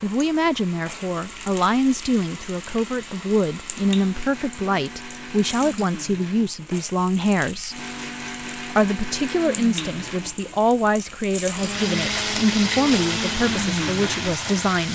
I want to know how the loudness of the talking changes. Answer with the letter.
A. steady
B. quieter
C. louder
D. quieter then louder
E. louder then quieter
A.